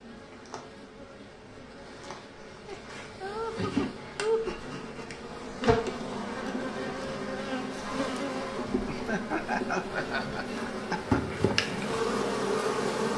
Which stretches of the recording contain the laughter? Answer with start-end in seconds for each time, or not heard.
2.6-4.7, 8.8-11.4.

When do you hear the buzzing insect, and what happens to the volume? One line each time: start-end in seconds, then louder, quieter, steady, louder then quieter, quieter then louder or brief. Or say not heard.
0.0-13.1 louder.